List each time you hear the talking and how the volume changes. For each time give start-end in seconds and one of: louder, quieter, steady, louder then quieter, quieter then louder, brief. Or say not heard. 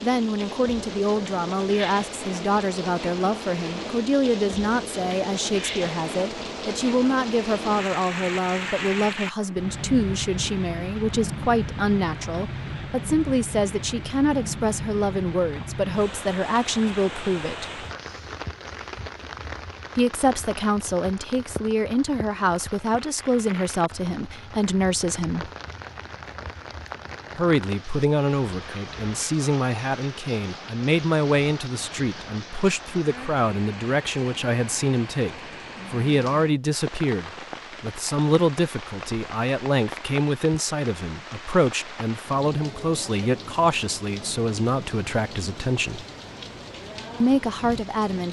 0.0-17.9 steady
19.9-25.5 steady
27.4-46.0 steady
47.2-48.2 brief.